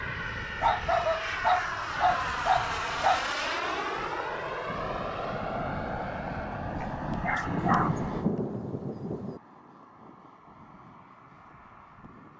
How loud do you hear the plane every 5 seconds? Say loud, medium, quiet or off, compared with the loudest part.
loud, loud, quiet.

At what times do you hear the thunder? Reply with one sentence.
The thunder can be heard from 7.5 to 9.4 s.